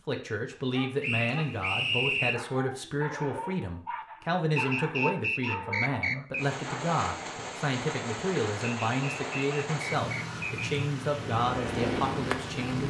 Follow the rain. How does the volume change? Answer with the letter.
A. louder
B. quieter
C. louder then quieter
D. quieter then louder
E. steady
E.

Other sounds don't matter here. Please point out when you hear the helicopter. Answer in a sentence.
The helicopter can be heard from 11.2 to 12.8 s.